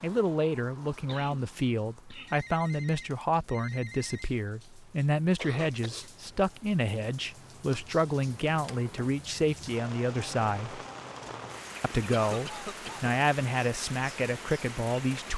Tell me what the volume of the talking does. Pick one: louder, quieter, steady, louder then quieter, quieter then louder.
steady.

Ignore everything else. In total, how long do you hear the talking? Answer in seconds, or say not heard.
14 s.